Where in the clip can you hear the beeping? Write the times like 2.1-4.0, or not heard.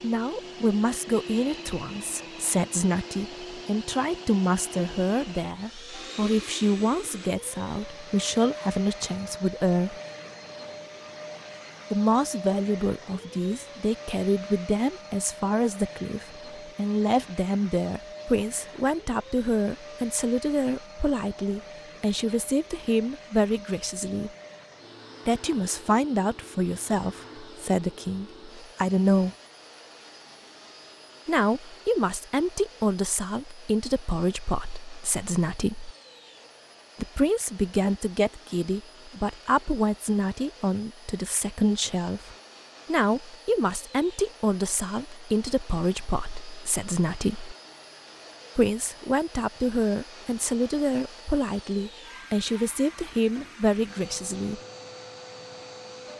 not heard.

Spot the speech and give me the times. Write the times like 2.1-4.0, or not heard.
0.0-9.9, 11.9-24.3, 25.2-29.4, 31.2-35.9, 37.0-47.5, 48.5-54.6.